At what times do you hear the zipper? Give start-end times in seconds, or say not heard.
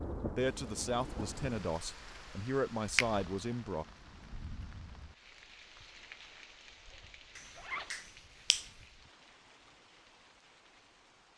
7.5-8.1.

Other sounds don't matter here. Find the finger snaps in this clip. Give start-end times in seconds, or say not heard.
7.3-8.7.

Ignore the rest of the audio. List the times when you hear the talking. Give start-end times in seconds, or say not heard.
0.3-3.9.